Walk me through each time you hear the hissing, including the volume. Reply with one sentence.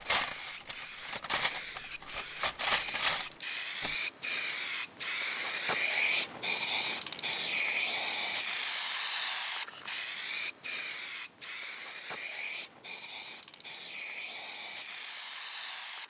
You can hear the hissing from 0.0 to 16.0 s, getting louder then quieter.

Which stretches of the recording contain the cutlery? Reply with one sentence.
The cutlery can be heard from 0.0 to 3.9 s.